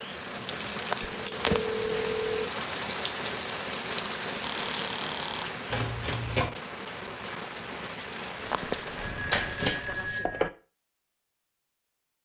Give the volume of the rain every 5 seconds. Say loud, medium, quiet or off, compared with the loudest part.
loud, loud, off.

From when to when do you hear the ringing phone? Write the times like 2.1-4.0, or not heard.
1.0-2.5, 4.4-5.5, 8.8-10.5.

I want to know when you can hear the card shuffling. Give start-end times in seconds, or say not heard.
0.3-2.2, 5.7-6.5, 8.4-10.2.